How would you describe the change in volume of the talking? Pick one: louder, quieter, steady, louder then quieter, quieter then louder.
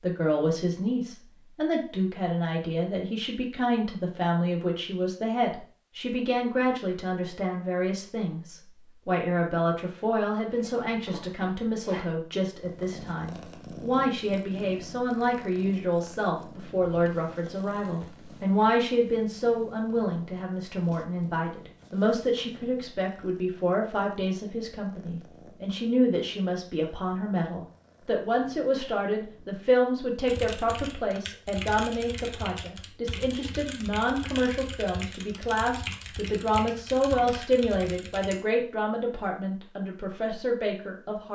steady.